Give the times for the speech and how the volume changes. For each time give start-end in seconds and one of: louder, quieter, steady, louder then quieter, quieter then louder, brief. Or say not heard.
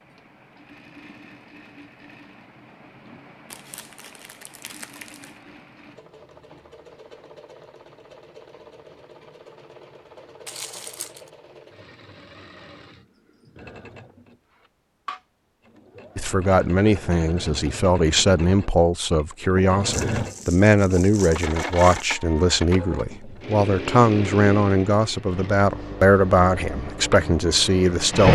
16.1-28.2 steady.